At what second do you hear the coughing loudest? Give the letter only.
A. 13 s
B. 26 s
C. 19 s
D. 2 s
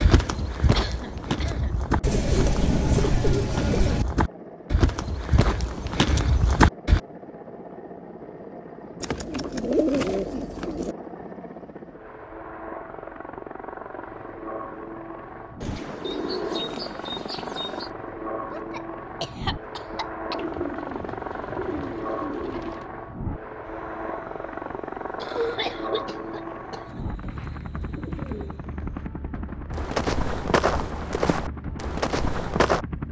B.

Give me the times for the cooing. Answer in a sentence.
The cooing can be heard from 2.0 to 4.0 s, from 9.0 to 10.9 s, from 15.6 to 17.9 s, from 20.3 to 22.9 s and from 26.9 to 28.6 s.